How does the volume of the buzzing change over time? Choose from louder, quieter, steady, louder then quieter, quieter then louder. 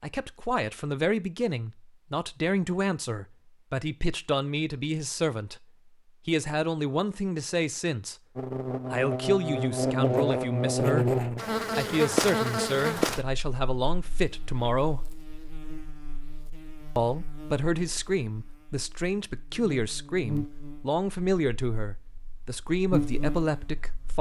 quieter then louder.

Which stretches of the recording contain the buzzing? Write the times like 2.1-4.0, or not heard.
8.3-24.1.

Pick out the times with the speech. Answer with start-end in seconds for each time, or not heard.
0.0-5.7, 6.2-8.2, 8.8-15.1, 16.9-24.1.